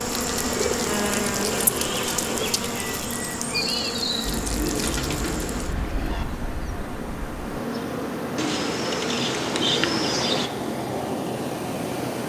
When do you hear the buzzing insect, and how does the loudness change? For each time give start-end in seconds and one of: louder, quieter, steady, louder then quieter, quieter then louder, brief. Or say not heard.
0.0-8.4 quieter.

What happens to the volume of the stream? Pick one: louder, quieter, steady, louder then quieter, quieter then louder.
louder.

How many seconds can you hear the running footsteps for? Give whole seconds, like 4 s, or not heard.
not heard.